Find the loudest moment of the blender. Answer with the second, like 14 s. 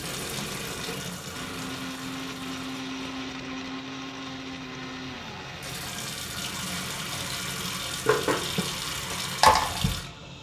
3 s.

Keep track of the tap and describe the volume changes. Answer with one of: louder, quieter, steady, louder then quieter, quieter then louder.
quieter then louder.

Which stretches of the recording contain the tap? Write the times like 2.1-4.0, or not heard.
0.0-10.3.